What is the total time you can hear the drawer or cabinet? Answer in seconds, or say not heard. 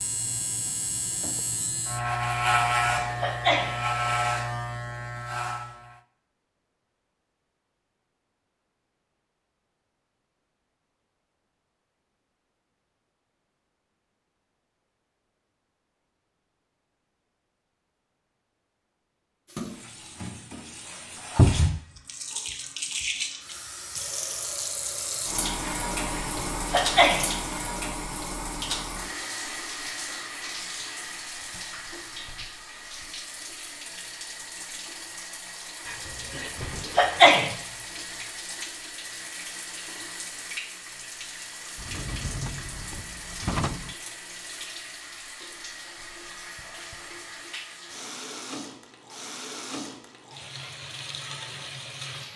3 s.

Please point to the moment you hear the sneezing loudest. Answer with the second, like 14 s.
37 s.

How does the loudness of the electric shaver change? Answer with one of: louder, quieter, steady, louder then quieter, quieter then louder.
louder then quieter.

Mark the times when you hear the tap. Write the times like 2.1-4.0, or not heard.
19.4-52.3.